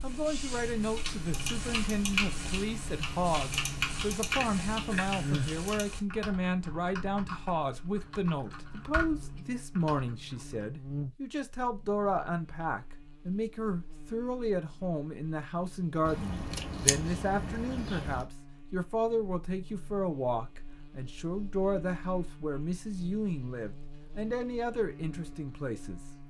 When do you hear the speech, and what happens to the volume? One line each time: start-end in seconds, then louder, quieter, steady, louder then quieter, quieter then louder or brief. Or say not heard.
0.0-26.0 steady.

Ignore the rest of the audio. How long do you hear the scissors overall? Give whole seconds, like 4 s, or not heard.
4 s.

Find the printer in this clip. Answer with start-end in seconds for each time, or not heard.
not heard.